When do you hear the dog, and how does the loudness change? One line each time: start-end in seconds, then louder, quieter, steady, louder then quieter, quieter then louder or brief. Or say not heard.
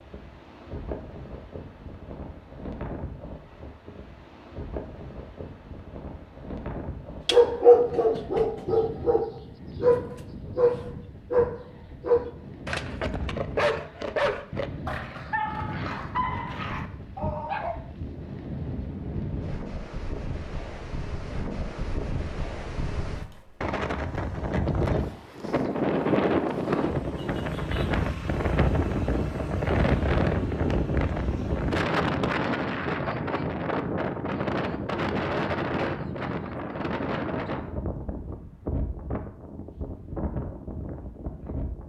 7.2-17.8 quieter.